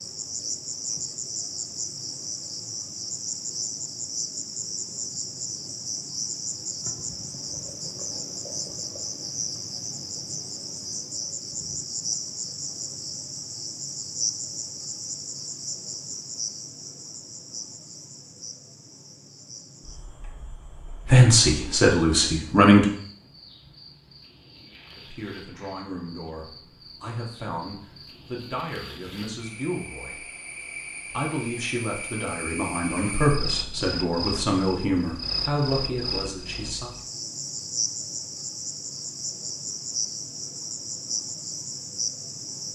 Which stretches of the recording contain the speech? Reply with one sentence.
You can hear the speech from 21.1 to 22.9 s, from 24.9 to 30.2 s and from 31.1 to 36.9 s.